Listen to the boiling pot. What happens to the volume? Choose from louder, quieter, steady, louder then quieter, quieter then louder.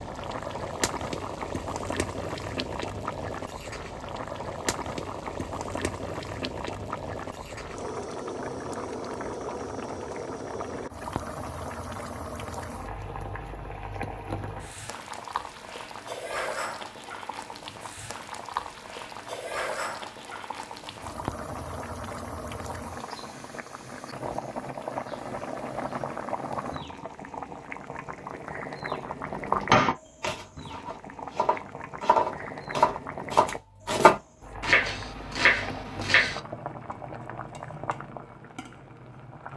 steady.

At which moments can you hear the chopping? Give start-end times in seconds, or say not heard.
29.4-36.4.